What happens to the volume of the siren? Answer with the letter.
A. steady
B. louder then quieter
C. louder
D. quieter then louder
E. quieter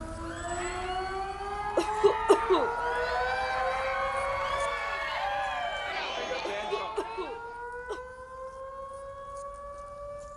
E.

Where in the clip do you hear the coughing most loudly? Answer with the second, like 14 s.
2 s.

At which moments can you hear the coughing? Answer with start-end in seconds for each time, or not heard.
1.8-2.8, 6.5-8.0.